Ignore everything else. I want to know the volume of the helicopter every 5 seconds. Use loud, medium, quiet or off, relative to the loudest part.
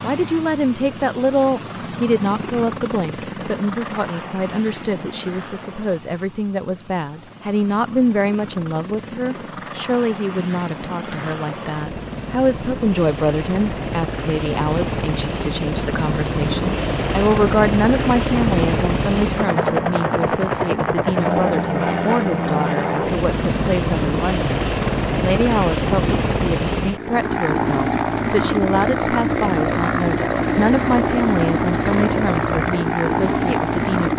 medium, quiet, medium, loud, loud, loud, loud.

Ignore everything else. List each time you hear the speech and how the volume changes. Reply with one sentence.
The speech can be heard from 0.0 to 34.1 s, at a steady volume.